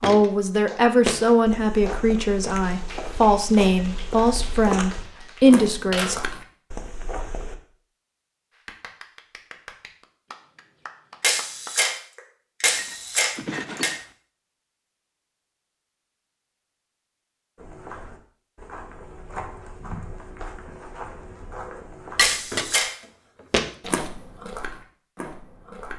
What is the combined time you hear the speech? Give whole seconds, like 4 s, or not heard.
6 s.